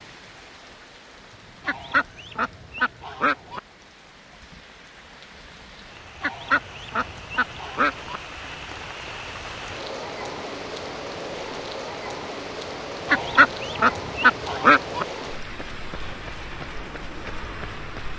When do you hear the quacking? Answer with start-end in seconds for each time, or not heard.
1.6-3.6, 6.2-8.2, 13.1-15.1.